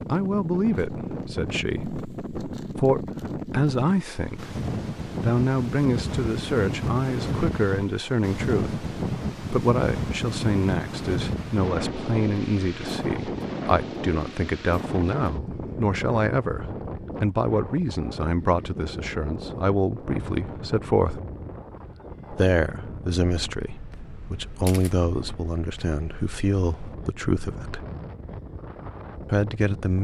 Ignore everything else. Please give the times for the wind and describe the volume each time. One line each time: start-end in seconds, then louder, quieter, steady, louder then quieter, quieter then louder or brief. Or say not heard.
0.0-29.9 quieter.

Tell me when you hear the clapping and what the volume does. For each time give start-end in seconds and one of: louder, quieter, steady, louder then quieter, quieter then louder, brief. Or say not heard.
not heard.